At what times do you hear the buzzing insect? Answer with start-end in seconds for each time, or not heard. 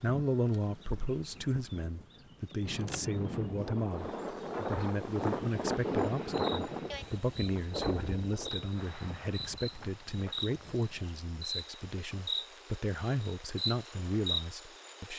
0.0-15.1.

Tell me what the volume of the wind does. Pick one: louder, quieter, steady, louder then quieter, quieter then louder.
louder then quieter.